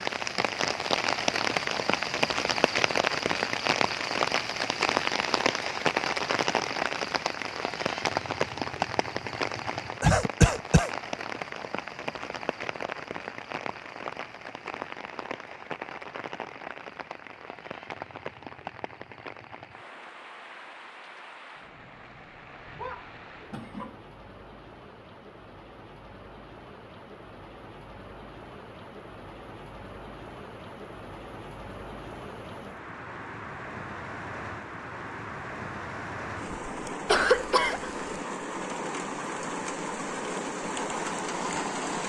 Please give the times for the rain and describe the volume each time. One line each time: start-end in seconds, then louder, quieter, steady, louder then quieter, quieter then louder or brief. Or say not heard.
0.0-42.0 quieter then louder.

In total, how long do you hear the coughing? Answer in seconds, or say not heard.
3 s.